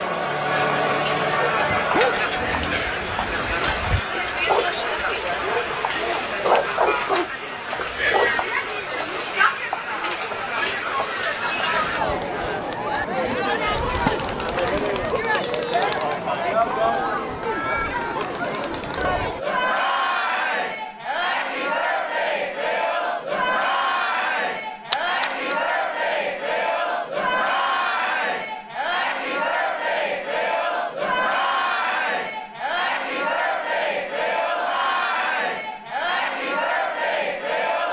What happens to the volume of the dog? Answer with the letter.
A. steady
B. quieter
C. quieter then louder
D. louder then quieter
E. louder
C.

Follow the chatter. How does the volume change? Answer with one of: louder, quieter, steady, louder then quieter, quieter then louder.
steady.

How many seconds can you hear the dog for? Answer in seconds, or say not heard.
7 s.